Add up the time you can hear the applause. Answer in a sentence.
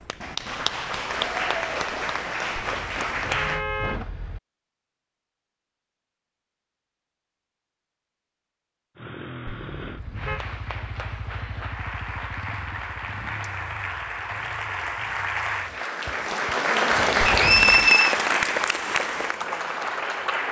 You can hear the applause for 14 seconds altogether.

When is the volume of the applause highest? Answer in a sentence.
The volume of the applause peaks at 17 seconds.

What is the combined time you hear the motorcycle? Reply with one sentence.
You can hear the motorcycle for 7 seconds altogether.